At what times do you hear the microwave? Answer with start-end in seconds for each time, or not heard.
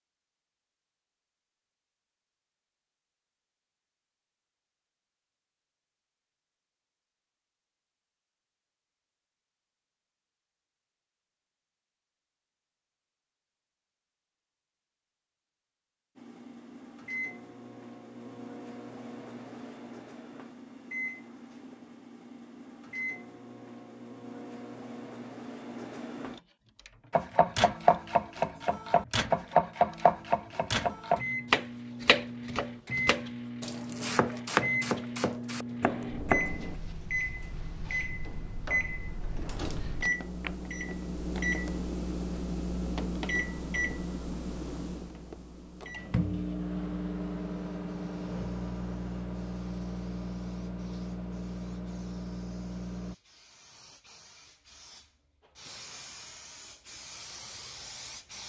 16.1-53.1.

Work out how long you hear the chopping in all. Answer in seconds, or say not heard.
10 s.